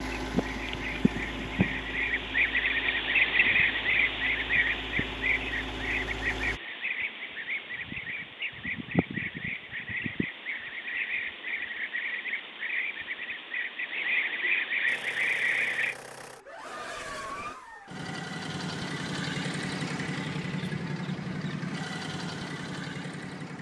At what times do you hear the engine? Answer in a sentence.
You can hear the engine from 0.0 to 6.6 s and from 14.8 to 23.5 s.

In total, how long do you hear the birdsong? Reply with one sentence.
You can hear the birdsong for 16 seconds altogether.